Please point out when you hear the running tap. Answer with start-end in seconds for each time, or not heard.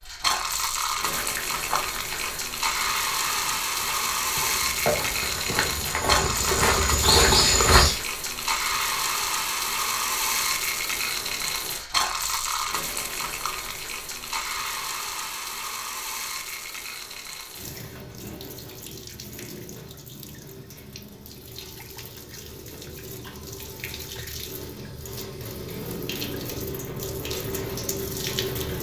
0.0-28.7.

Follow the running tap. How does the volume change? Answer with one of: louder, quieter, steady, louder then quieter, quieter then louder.
quieter then louder.